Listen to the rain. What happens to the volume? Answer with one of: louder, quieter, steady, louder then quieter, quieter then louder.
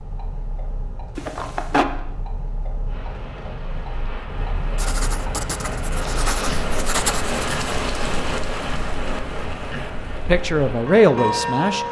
louder then quieter.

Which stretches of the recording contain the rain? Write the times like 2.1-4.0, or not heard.
2.9-11.8.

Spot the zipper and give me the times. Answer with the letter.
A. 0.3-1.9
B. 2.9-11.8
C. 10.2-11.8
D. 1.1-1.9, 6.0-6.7
D.